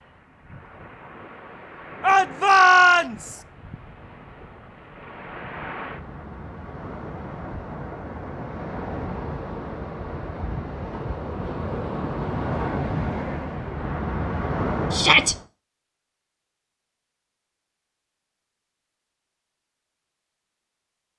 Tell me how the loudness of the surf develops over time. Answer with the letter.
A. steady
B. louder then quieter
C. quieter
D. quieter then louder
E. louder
E.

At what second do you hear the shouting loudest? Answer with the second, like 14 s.
3 s.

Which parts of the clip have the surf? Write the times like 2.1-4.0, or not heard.
0.0-15.4.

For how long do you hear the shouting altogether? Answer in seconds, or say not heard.
2 s.